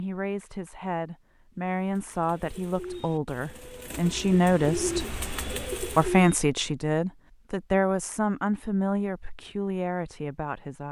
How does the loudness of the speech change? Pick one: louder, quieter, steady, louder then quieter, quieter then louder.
louder then quieter.